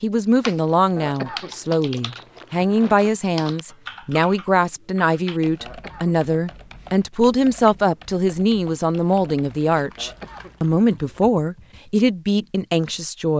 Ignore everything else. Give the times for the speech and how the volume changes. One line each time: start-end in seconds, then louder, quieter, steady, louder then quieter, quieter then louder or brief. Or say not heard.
0.0-13.3 steady.